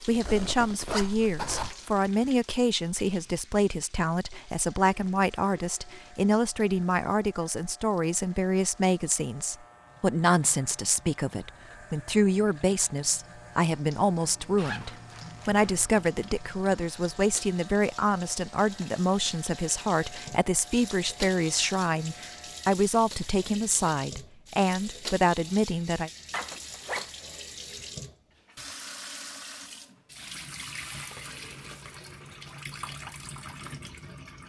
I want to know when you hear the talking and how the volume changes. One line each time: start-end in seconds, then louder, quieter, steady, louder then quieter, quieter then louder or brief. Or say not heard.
0.1-26.1 steady.